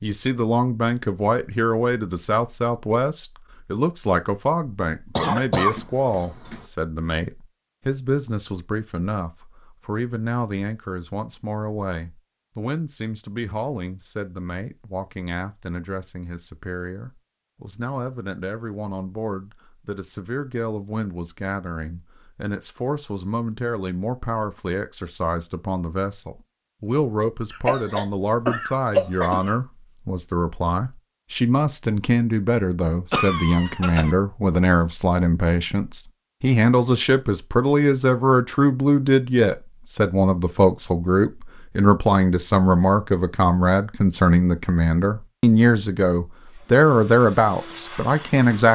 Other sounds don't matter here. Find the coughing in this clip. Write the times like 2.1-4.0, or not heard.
5.2-6.7, 27.5-29.6, 33.1-34.1.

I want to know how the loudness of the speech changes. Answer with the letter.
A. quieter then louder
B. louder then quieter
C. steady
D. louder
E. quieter
A.